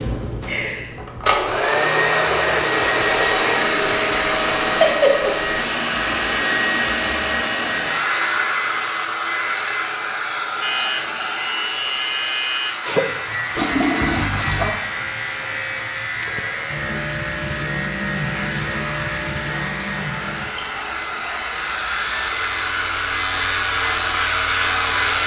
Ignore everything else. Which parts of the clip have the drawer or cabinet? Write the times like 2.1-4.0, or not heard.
not heard.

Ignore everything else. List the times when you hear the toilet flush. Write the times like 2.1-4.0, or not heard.
2.7-5.0, 13.6-14.7.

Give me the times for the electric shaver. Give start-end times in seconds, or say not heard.
10.6-25.2.